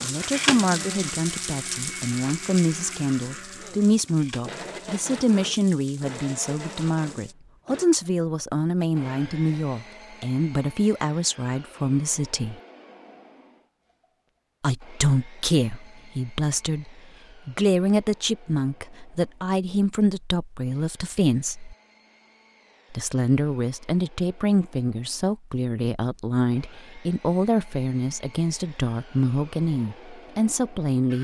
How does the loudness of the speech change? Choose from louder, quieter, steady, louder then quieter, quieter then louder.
steady.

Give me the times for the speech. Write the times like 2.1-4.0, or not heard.
0.0-12.6, 14.6-21.8, 22.9-31.1.